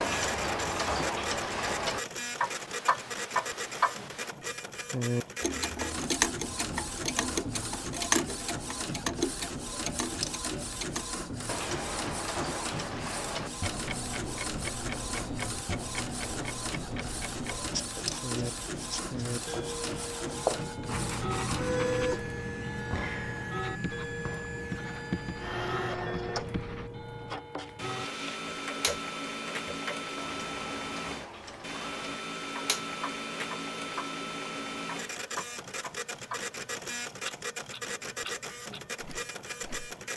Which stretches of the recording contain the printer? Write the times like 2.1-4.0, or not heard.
0.0-40.1.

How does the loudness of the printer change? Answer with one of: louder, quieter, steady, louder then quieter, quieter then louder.
steady.